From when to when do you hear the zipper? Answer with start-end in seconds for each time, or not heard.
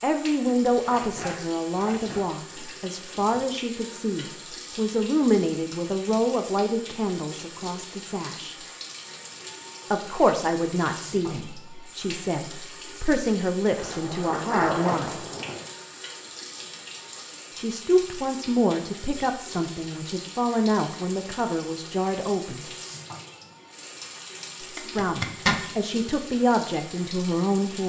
0.8-2.2, 13.7-15.7, 24.8-25.6.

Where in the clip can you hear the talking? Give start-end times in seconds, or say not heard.
0.0-8.6, 9.9-15.2, 17.5-22.7, 24.8-27.8.